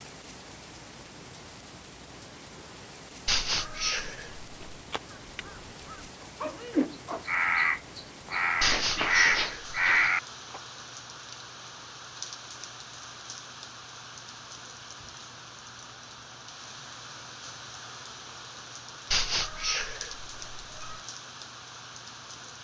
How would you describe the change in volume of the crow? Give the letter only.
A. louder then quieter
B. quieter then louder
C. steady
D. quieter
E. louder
E.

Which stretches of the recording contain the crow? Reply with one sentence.
The crow can be heard from 4.6 to 10.6 s.